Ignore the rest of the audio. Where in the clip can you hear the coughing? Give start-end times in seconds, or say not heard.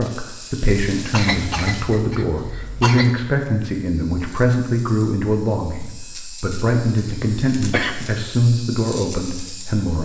1.1-3.1, 7.7-8.2.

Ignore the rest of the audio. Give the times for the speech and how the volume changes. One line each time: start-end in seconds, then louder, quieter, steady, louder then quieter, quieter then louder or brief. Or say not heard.
0.0-9.9 steady.